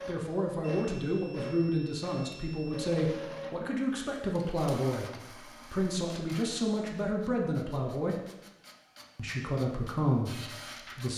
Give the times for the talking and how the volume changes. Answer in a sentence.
The talking can be heard from 0.1 to 8.2 s, at a steady volume; and briefly from 9.2 to 11.1 s.